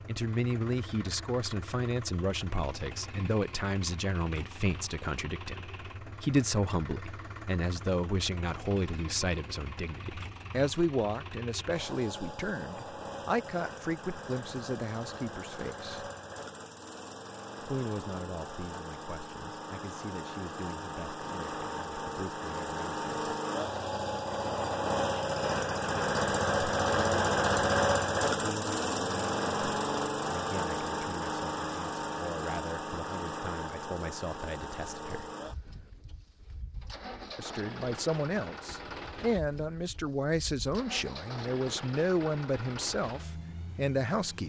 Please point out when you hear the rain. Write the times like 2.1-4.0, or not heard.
not heard.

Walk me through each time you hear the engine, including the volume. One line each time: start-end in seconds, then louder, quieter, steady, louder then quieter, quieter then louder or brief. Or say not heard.
0.0-44.4 louder then quieter.